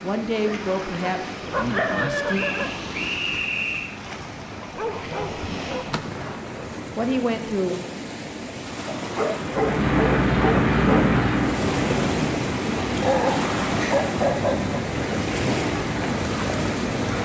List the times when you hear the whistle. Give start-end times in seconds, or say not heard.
2.3-4.0.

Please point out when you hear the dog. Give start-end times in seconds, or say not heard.
0.5-2.7, 4.8-6.9, 8.8-11.1, 13.0-14.8.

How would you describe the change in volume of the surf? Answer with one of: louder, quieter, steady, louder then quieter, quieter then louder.
louder.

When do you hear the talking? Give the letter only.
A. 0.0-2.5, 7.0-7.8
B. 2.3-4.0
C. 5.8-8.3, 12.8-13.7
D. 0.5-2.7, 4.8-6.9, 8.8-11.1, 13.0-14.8
A.